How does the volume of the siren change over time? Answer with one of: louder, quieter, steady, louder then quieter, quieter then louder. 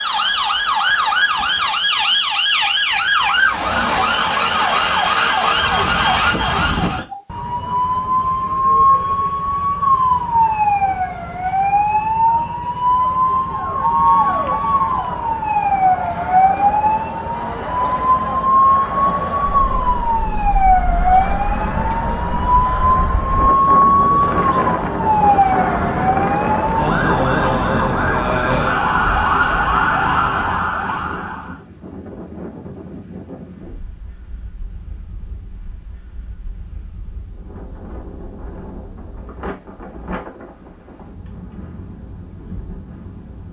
steady.